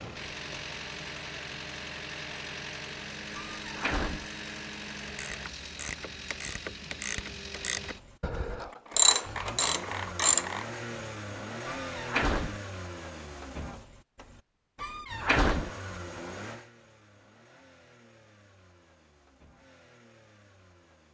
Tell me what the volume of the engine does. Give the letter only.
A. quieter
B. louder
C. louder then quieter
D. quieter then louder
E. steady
A.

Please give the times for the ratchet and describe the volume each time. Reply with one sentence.
You can hear the ratchet from 5.0 to 10.7 s, getting louder then quieter.